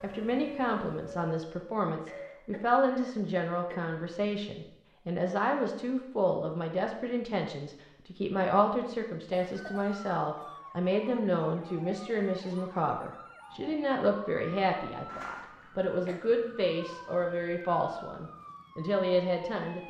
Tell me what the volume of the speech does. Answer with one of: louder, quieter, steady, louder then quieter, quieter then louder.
steady.